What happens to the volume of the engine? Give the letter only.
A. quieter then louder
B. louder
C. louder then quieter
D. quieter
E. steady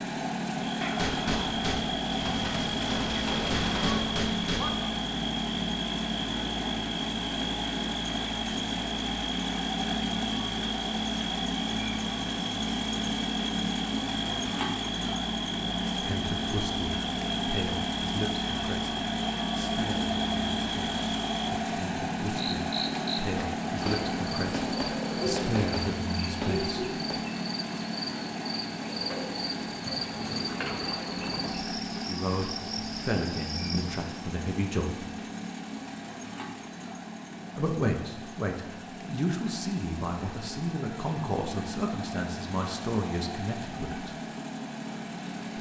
D.